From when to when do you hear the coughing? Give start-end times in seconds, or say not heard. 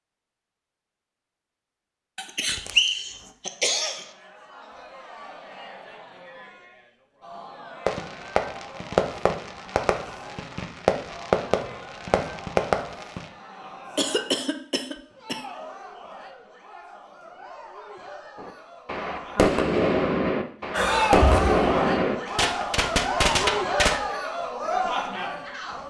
2.1-4.1, 13.9-15.4, 20.7-21.6.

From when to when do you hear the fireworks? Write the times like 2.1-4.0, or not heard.
7.8-13.2, 18.4-24.0.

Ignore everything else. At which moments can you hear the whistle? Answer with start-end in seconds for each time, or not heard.
2.4-3.1.